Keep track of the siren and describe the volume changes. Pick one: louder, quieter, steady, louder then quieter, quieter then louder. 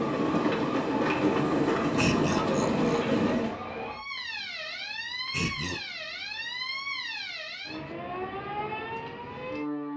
steady.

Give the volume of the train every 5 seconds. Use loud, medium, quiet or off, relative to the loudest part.
loud, off.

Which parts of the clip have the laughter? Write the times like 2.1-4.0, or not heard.
1.9-2.9, 5.3-5.8.